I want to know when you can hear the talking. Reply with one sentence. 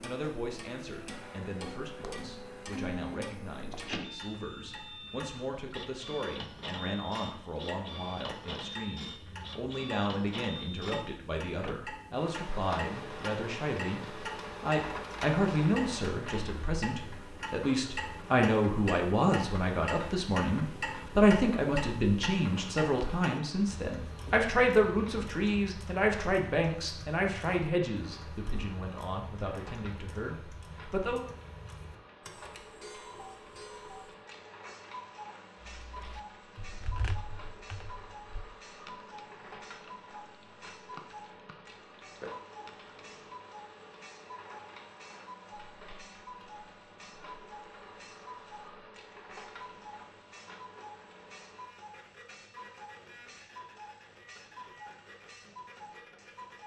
You can hear the talking from 0.0 to 31.2 s.